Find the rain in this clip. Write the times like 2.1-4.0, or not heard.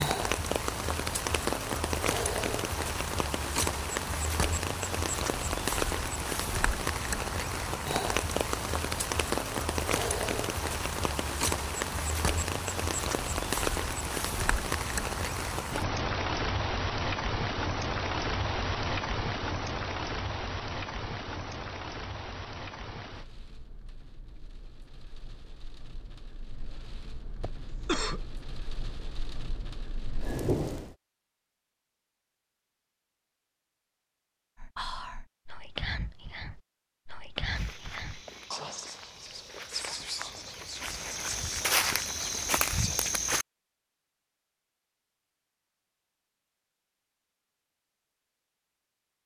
0.0-30.9.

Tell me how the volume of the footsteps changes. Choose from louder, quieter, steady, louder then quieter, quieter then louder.
louder.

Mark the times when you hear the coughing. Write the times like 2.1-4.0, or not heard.
27.4-28.2.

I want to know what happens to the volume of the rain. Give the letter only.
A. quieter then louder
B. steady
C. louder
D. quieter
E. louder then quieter
D.